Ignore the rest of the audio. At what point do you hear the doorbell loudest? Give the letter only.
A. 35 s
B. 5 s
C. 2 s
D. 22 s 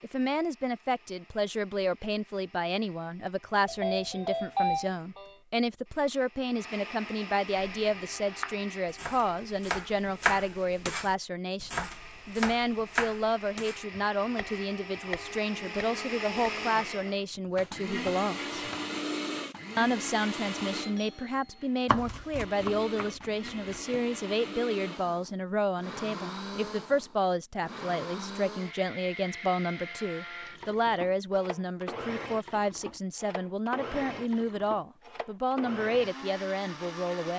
B.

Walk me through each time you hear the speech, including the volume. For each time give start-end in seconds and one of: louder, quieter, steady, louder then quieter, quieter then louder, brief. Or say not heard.
0.0-18.6 steady
19.8-37.3 steady.